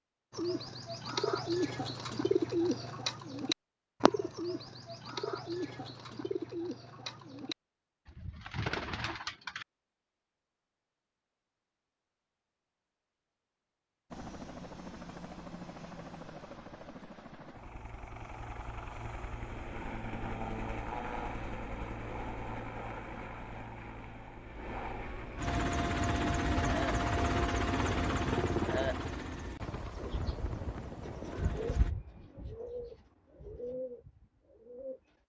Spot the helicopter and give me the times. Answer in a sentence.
You can hear the helicopter from 14.1 to 31.9 s.